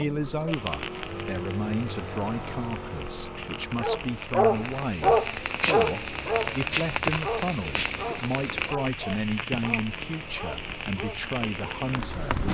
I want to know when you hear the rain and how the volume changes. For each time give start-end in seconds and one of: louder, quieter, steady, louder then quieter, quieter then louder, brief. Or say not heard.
0.0-12.4 louder then quieter.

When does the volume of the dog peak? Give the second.
5 s.